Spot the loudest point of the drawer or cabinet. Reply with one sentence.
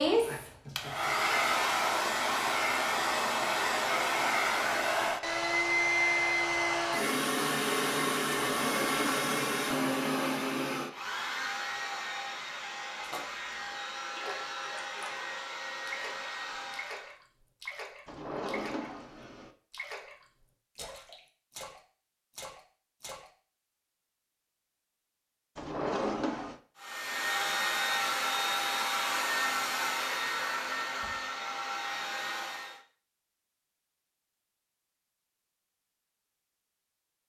The volume of the drawer or cabinet peaks at 26 seconds.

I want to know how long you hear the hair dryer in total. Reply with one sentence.
The hair dryer can be heard for 23 seconds in total.